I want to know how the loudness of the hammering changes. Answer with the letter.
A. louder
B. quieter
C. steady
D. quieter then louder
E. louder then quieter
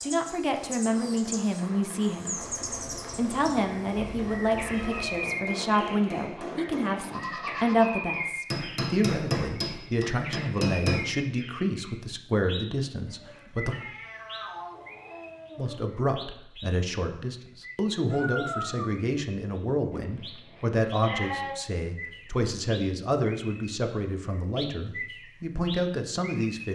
A.